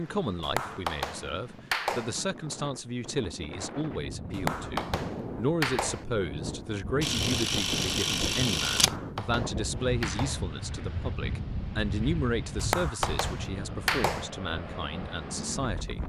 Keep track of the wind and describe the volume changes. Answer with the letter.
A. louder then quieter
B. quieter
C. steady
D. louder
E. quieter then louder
D.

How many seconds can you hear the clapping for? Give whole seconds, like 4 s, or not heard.
7 s.